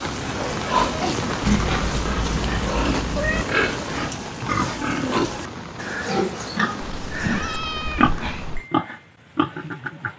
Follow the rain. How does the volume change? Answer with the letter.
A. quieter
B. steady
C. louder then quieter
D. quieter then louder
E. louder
A.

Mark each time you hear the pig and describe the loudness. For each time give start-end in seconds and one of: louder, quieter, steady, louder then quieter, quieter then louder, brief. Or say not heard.
0.0-10.1 steady.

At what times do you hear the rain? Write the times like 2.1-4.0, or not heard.
0.0-8.7.